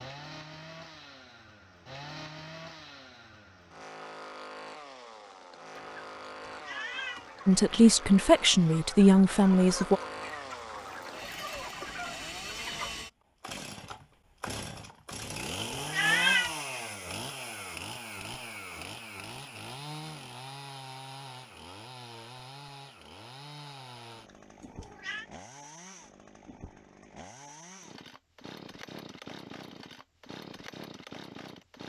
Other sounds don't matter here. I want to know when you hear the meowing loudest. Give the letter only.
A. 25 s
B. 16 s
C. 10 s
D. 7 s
B.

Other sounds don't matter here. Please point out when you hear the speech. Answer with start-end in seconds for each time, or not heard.
7.5-10.0.